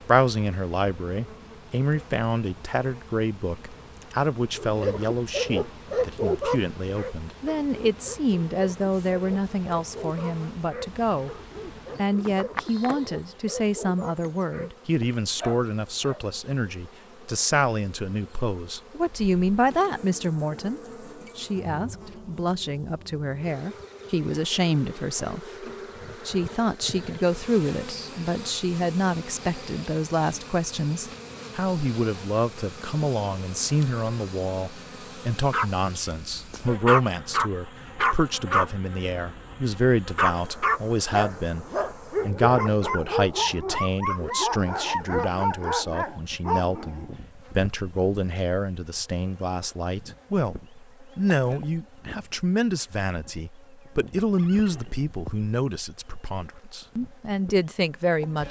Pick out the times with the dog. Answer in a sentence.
You can hear the dog from 4.5 to 14.7 s, from 15.3 to 16.2 s and from 35.5 to 47.1 s.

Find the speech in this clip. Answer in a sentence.
You can hear the speech from 0.1 to 11.3 s, from 11.9 to 25.6 s and from 26.2 to 58.4 s.